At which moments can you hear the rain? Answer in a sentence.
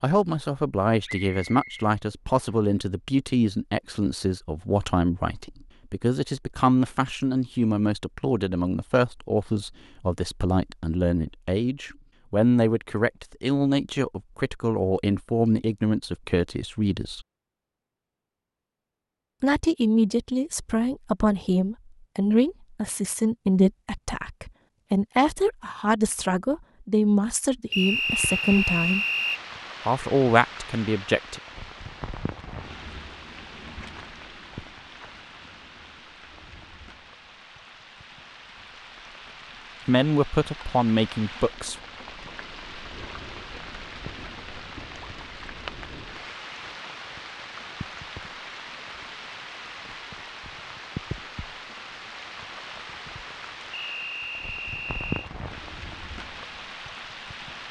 You can hear the rain from 27.8 to 57.6 s.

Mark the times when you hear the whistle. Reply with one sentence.
The whistle can be heard from 1.1 to 2.5 s, from 27.7 to 29.4 s and from 53.7 to 55.3 s.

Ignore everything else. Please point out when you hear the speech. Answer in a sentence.
You can hear the speech from 0.0 to 17.2 s, from 19.4 to 29.1 s, from 29.9 to 31.4 s and from 39.9 to 41.8 s.